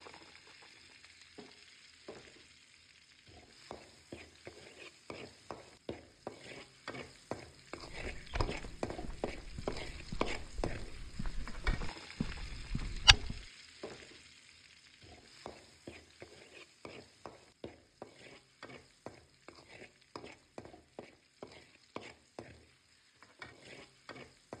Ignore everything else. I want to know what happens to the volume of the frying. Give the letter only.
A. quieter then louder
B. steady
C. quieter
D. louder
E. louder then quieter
E.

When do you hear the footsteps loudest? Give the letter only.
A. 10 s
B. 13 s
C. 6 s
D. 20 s
B.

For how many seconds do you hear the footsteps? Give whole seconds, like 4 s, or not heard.
6 s.